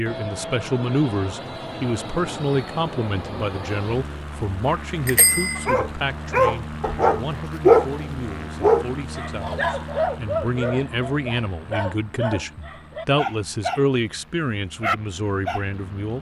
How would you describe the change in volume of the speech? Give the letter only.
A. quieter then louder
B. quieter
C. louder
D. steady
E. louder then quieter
A.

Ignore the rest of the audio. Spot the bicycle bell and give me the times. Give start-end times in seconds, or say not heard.
5.0-5.7.